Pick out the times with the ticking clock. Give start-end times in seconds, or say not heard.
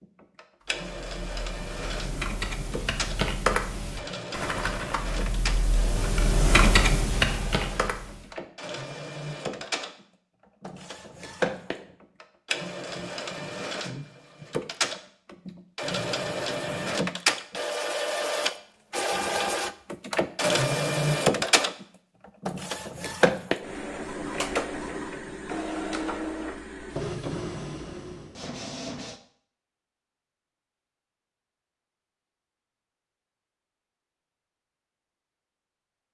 not heard.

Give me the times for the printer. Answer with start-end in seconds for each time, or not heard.
0.0-29.2.